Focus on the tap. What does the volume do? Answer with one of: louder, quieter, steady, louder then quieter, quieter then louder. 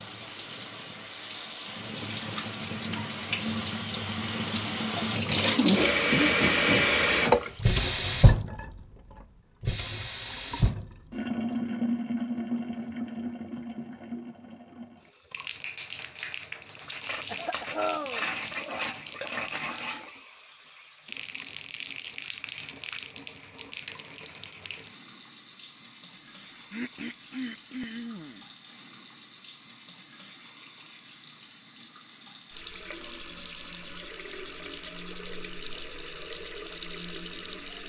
quieter.